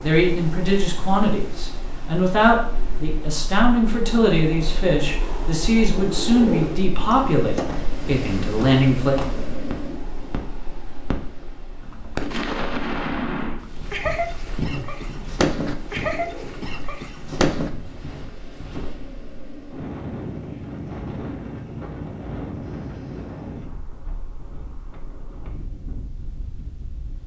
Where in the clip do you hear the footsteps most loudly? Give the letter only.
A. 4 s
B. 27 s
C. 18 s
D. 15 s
D.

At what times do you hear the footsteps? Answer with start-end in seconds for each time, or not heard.
13.6-19.0.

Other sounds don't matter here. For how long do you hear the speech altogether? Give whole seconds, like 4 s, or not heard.
9 s.